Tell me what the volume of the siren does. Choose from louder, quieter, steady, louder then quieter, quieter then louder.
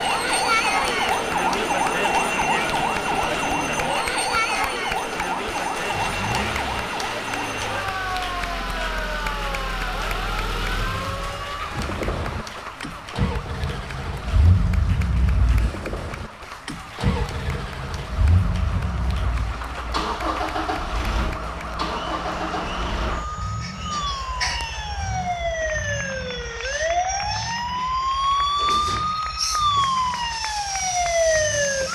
quieter then louder.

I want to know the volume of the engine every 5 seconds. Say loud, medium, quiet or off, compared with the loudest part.
medium, loud, loud, loud, loud, medium, quiet.